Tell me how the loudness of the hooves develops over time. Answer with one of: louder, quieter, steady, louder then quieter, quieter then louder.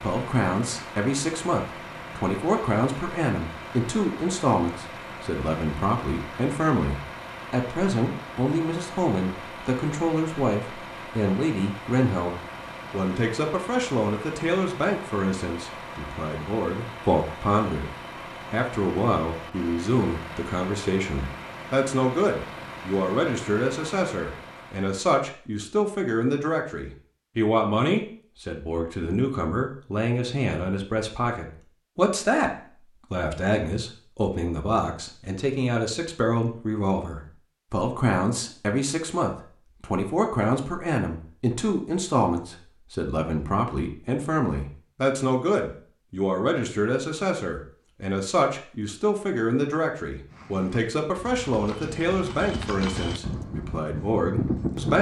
louder.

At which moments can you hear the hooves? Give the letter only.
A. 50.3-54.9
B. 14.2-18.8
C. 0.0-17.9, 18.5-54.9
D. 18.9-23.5
A.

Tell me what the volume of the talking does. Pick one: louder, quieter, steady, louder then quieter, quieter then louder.
steady.